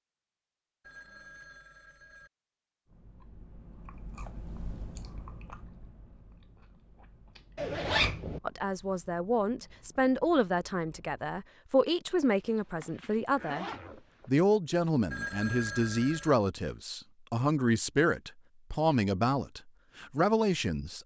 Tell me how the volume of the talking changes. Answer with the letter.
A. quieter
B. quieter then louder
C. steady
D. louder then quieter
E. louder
C.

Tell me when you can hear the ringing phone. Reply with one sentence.
You can hear the ringing phone from 0.8 to 2.3 s and from 15.1 to 16.4 s.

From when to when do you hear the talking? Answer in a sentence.
You can hear the talking from 8.4 to 13.7 s and from 14.2 to 21.0 s.